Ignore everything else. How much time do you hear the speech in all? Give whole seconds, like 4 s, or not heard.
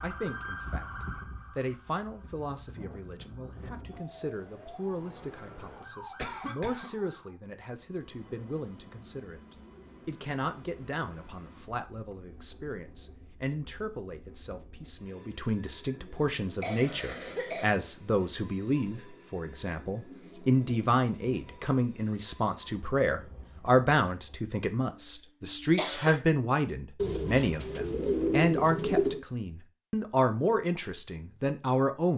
32 s.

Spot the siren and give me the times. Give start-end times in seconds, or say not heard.
0.0-7.3.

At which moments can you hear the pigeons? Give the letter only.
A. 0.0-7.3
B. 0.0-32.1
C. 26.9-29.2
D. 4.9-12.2
C.